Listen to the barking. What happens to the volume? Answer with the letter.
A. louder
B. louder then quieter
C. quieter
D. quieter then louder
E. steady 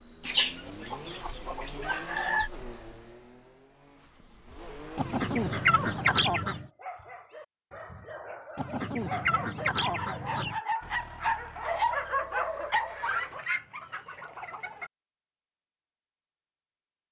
A.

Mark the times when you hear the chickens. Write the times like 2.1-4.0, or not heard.
0.2-2.5, 5.0-6.7, 8.6-10.6, 13.0-14.9.